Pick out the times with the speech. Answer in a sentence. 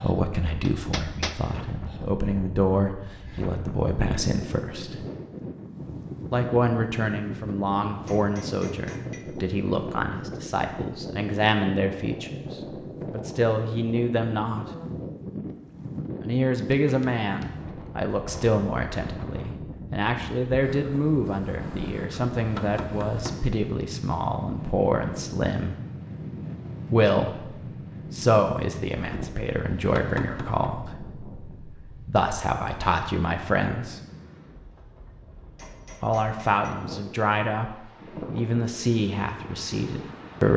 You can hear the speech from 0.0 to 5.0 s, from 6.3 to 12.4 s, from 13.1 to 14.7 s, from 16.2 to 25.8 s, from 26.9 to 34.0 s and from 36.0 to 40.5 s.